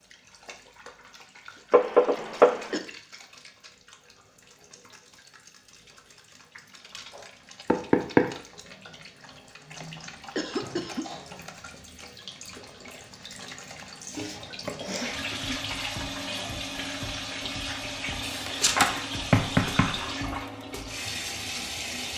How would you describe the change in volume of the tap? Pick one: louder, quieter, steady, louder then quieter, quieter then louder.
louder.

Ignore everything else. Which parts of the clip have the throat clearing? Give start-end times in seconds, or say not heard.
2.1-2.9, 9.8-11.1, 14.8-15.6.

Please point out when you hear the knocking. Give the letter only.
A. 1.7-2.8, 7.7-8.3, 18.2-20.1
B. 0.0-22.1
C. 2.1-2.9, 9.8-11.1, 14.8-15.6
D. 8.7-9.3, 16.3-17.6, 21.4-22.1
A.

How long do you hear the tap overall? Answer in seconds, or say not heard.
22 s.